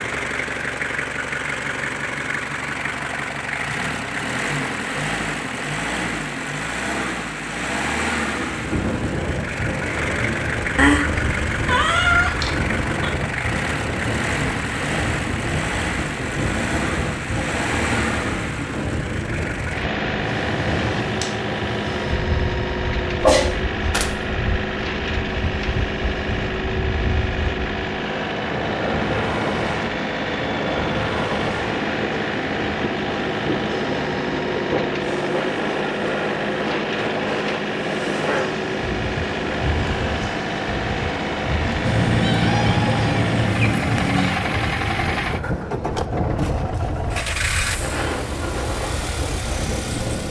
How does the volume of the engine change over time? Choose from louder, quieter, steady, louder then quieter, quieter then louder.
steady.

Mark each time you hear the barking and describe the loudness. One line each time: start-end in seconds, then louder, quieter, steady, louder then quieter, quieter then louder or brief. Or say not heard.
not heard.